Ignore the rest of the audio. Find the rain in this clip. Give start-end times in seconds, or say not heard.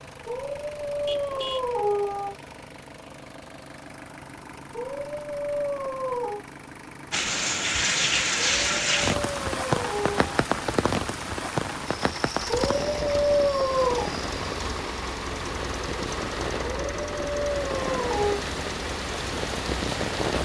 7.1-20.4.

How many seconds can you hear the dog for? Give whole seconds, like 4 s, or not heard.
9 s.